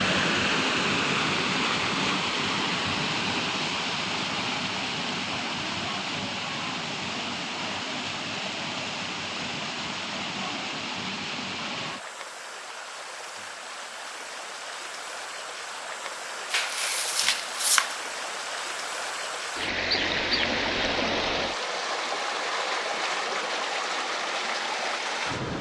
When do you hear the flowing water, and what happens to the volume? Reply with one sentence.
The flowing water can be heard from 0.0 to 25.5 s, getting quieter then louder.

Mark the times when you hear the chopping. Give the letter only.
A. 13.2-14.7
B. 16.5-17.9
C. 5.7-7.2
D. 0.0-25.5
B.